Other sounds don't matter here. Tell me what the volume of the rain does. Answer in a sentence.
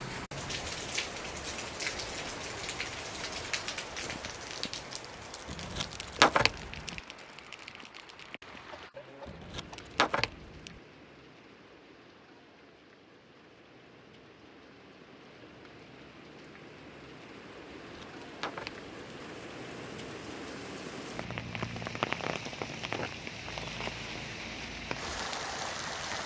The volume of the rain goes down, then up.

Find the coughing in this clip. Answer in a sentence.
The coughing can be heard from 8.5 to 9.9 s.